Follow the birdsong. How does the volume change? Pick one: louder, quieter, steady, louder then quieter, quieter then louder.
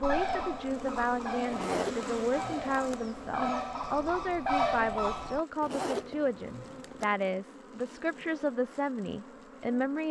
louder.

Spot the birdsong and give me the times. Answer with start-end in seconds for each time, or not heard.
0.0-5.5.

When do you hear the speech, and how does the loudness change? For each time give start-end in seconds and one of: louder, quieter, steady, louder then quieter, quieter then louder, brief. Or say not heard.
0.0-10.0 steady.